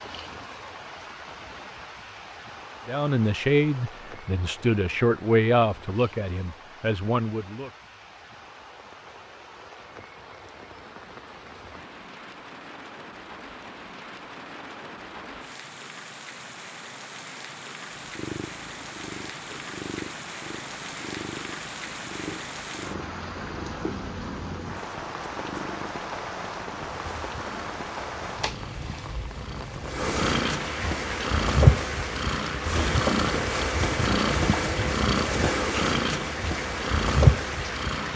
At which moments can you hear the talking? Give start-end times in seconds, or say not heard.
2.9-7.7.